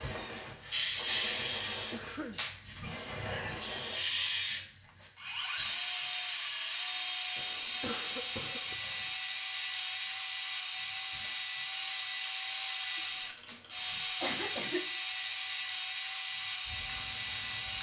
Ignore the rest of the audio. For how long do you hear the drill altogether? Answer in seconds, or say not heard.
18 s.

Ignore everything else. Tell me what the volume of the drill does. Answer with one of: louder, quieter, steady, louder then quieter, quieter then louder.
louder.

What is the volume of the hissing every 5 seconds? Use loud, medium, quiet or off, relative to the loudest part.
loud, quiet, quiet, quiet.